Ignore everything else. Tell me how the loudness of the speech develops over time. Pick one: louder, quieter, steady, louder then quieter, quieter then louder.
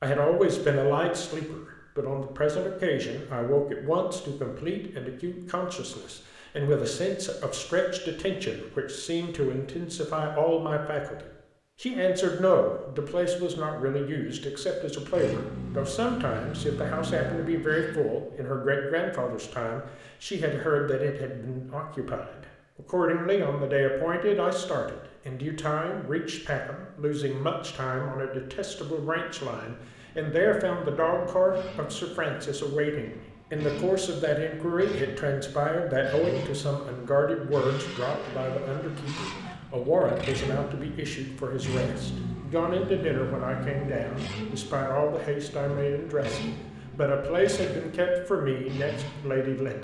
steady.